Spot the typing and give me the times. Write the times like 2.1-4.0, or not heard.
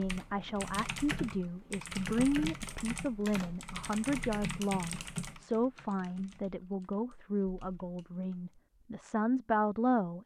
0.0-8.6.